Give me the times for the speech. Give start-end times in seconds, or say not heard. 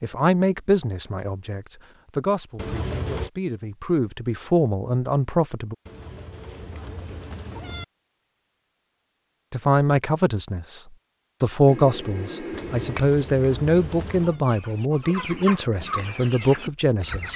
0.0-5.8, 9.5-17.3.